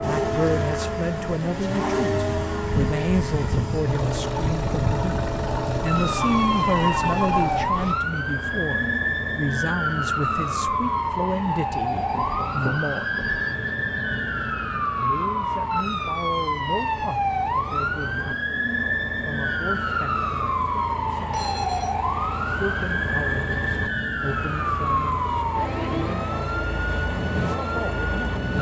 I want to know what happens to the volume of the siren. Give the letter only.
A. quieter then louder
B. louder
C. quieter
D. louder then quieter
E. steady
E.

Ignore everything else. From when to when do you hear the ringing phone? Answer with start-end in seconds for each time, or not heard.
6.0-8.0, 11.9-13.6, 21.3-21.9.